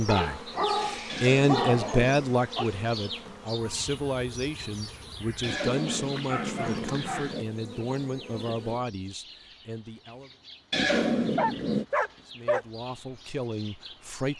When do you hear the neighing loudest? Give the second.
11 s.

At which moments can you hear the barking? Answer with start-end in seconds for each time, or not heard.
0.1-2.7, 5.8-7.3, 11.3-12.7.